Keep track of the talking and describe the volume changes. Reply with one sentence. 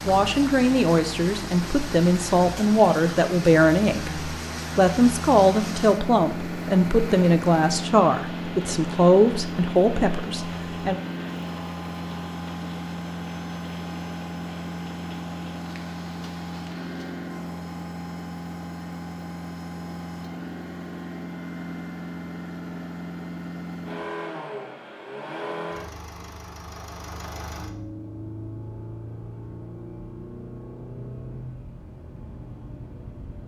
The volume of the talking stays about the same.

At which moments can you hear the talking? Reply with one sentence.
The talking can be heard from 0.1 to 11.0 s.